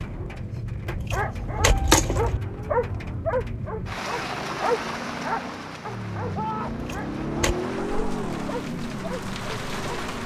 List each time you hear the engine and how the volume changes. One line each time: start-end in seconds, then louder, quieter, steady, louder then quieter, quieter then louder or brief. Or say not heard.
0.0-10.2 louder.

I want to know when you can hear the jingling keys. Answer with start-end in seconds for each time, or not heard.
0.8-2.4, 6.7-7.5.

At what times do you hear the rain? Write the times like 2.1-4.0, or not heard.
0.0-10.2.